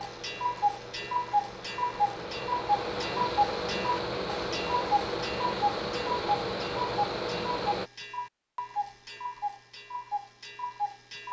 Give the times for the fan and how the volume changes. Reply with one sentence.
You can hear the fan from 0.0 to 7.9 s, getting louder.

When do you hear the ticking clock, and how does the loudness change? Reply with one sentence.
You can hear the ticking clock from 0.0 to 11.2 s, getting quieter.